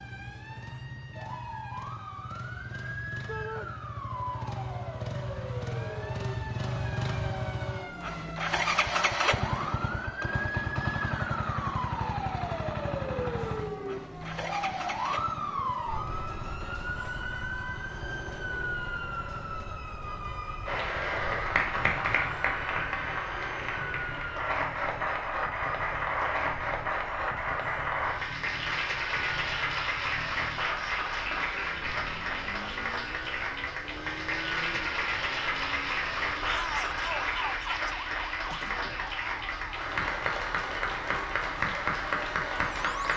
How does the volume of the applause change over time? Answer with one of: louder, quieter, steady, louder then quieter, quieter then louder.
steady.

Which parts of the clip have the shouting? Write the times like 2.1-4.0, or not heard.
3.2-3.7, 36.5-37.9.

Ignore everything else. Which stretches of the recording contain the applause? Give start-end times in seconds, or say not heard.
20.6-43.1.